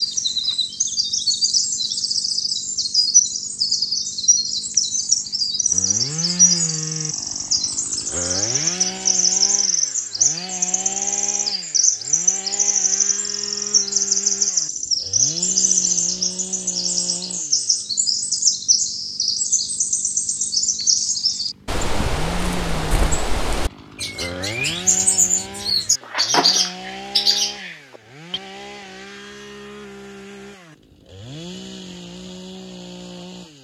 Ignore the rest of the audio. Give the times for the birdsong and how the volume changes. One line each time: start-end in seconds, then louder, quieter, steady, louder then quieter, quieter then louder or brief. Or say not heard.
0.0-28.4 steady.